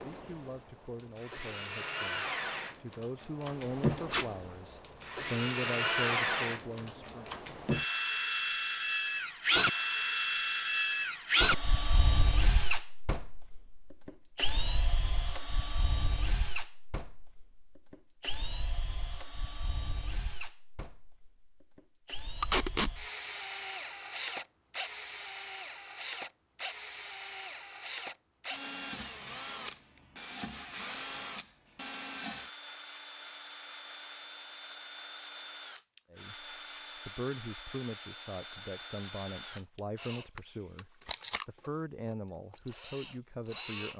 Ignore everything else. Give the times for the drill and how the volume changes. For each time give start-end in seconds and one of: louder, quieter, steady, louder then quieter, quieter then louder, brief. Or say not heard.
0.0-43.9 quieter.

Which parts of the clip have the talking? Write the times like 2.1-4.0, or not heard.
0.0-7.3, 36.1-43.9.